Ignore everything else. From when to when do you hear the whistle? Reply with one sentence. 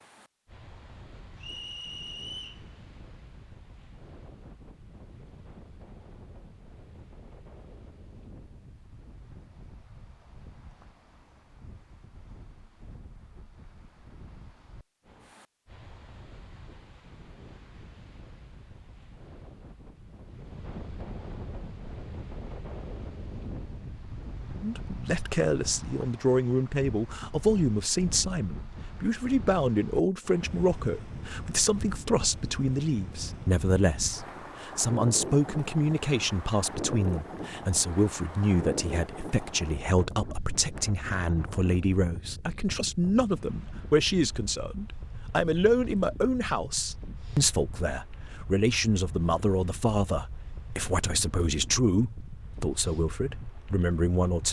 You can hear the whistle from 1.4 to 2.6 s.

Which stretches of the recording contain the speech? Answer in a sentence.
You can hear the speech from 24.6 to 54.4 s.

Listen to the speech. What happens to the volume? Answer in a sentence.
The loudness of the speech stays about the same.